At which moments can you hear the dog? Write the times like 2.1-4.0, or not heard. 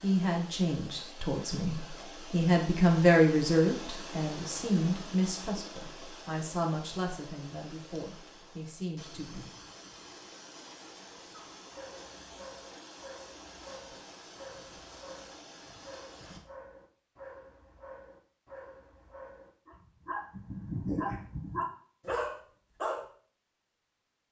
11.6-23.1.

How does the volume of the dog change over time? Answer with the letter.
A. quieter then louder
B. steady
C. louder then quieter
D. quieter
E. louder
E.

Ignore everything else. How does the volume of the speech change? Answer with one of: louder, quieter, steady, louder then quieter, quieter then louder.
louder then quieter.